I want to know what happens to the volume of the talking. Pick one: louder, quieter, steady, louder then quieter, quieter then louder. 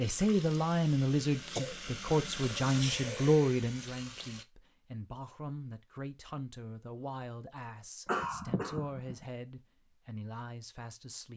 quieter.